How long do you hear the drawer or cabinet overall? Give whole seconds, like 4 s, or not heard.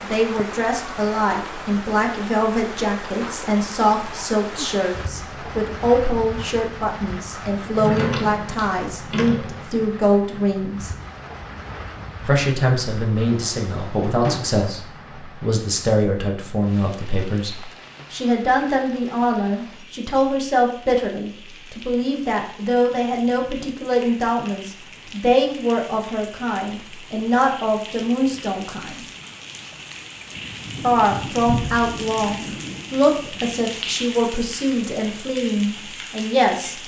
4 s.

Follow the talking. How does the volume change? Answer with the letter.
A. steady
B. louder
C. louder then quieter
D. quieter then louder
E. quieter
A.